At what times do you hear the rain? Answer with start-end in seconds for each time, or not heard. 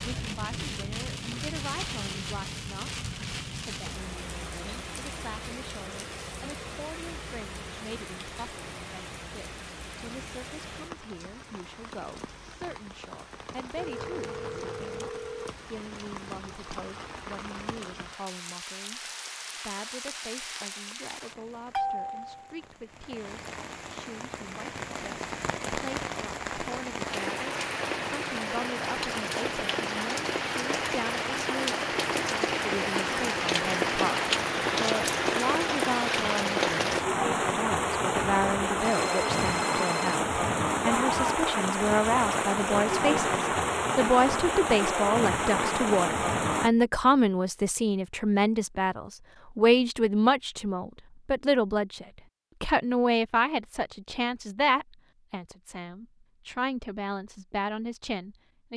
0.0-46.7.